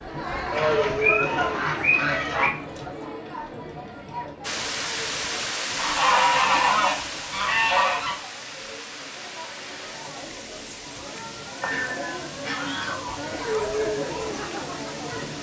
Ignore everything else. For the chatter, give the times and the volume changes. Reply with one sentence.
You can hear the chatter from 0.0 to 15.3 s, getting quieter then louder.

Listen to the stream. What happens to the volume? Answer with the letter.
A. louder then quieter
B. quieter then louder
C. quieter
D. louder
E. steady
C.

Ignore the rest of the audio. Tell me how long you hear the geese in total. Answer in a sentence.
You can hear the geese for 6 seconds altogether.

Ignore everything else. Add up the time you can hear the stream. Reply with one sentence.
The stream can be heard for 11 seconds in total.